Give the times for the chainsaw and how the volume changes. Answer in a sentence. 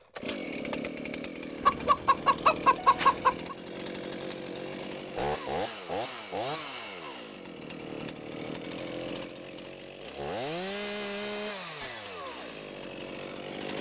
The chainsaw can be heard from 0.0 to 13.7 s, at a steady volume.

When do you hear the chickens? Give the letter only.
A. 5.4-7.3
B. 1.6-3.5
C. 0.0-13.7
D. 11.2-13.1
B.